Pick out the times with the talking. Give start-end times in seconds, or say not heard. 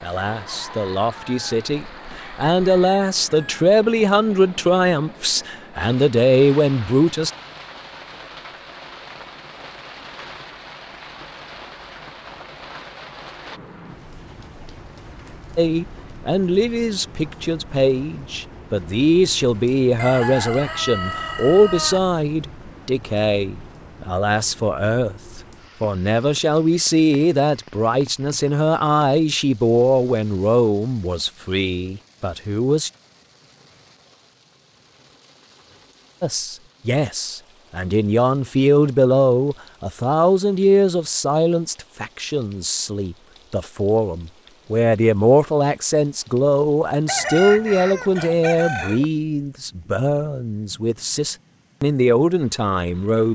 0.0-7.3, 15.6-32.9, 36.2-53.3.